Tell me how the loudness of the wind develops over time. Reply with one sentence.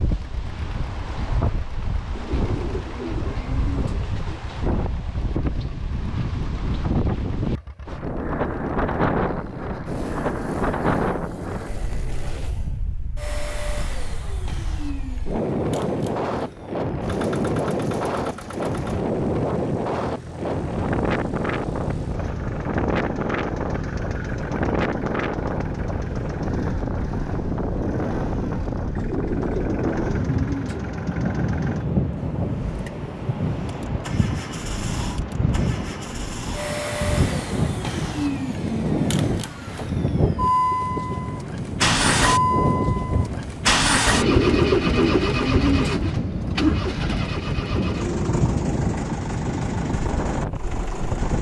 The volume of the wind stays about the same.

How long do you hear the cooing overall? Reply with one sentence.
You can hear the cooing for 6 seconds altogether.